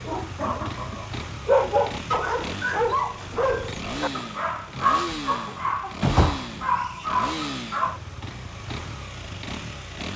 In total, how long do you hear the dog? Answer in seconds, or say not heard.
8 s.